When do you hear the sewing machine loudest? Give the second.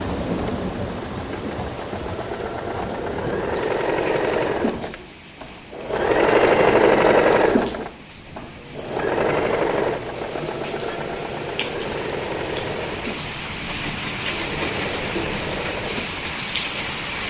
7 s.